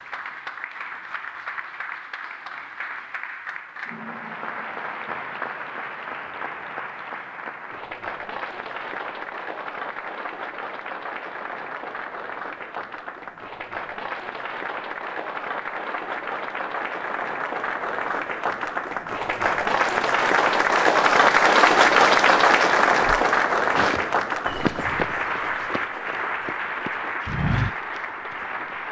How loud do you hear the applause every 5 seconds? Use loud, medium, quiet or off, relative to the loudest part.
quiet, quiet, quiet, medium, loud, medium.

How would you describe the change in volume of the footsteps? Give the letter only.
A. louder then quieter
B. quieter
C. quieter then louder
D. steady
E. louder
C.